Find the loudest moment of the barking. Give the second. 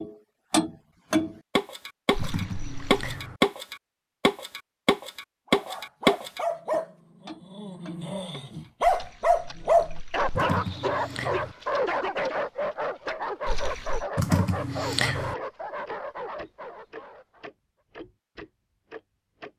10 s.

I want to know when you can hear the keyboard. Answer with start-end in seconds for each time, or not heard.
2.1-3.4, 10.3-11.6, 14.2-15.3.